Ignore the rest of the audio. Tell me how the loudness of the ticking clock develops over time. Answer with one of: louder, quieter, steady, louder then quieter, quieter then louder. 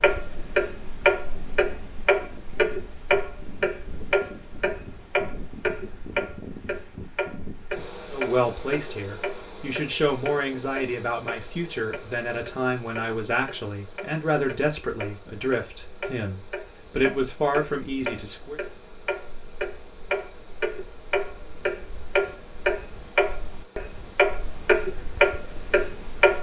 quieter then louder.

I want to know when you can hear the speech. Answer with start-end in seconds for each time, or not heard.
8.1-18.6.